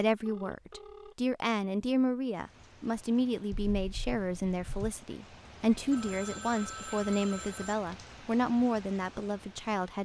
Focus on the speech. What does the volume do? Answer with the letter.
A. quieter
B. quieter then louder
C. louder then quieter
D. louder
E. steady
E.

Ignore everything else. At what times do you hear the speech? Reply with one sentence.
The speech can be heard from 0.0 to 10.0 s.